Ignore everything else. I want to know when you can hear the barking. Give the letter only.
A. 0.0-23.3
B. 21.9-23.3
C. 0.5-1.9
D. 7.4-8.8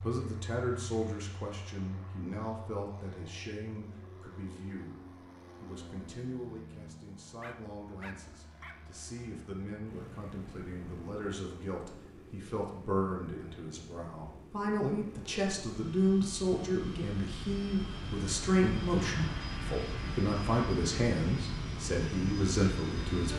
D.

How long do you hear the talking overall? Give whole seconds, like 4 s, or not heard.
23 s.